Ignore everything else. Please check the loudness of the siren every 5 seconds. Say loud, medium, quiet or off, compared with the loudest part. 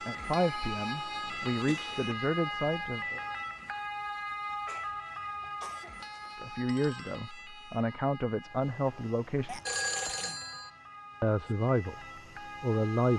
loud, medium, medium.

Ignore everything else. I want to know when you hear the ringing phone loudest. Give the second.
10 s.